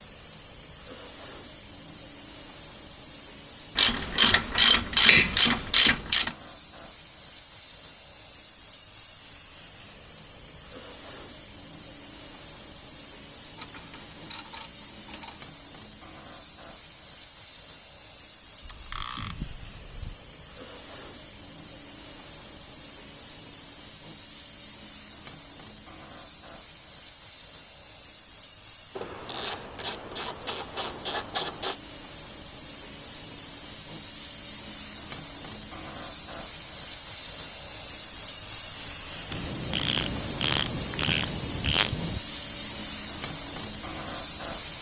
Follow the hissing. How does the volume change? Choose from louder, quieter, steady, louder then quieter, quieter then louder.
louder.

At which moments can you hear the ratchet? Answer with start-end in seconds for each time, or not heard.
3.8-6.3, 13.6-15.4, 18.6-20.1, 28.9-31.8, 39.3-42.2.